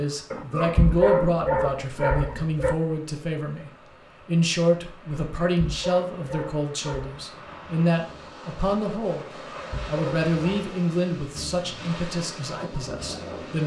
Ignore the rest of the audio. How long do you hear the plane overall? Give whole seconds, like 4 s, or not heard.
not heard.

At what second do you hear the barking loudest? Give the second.
1 s.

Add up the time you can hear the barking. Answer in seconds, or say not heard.
6 s.